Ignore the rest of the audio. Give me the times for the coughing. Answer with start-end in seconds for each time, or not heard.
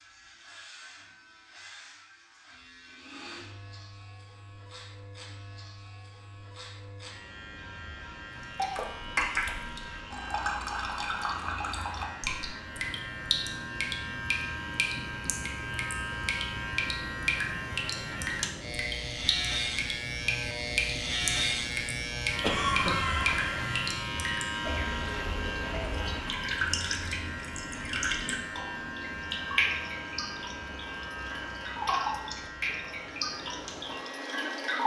22.4-23.8.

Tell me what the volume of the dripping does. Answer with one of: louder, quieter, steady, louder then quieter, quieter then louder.
steady.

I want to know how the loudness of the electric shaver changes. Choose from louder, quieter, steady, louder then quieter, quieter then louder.
louder then quieter.